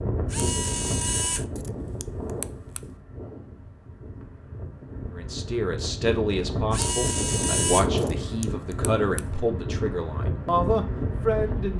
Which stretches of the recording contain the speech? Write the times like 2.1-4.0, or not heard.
5.2-11.7.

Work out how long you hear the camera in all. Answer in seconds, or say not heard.
5 s.